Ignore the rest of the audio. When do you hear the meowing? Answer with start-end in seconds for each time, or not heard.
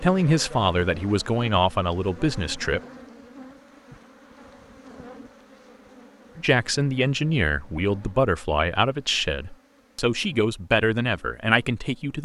not heard.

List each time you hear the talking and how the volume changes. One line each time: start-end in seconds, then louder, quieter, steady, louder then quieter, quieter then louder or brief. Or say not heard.
0.0-2.8 brief
6.3-12.2 steady.